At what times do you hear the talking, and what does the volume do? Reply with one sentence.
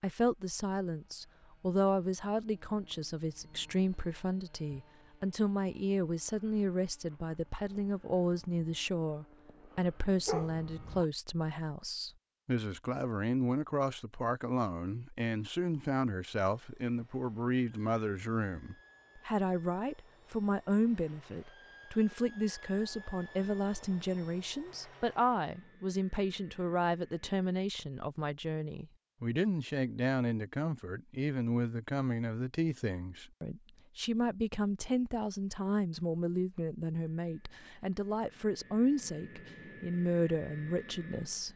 The talking can be heard from 0.0 to 41.5 s, at a steady volume.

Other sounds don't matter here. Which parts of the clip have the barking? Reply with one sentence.
The barking can be heard from 10.1 to 11.1 s.